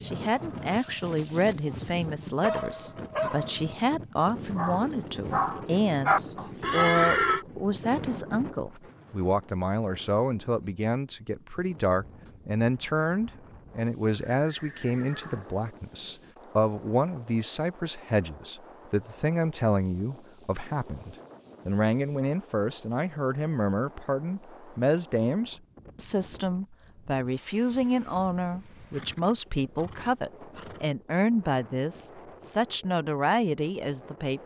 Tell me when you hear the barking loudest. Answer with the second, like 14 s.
6 s.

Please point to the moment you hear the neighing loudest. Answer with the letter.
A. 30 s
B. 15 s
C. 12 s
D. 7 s
D.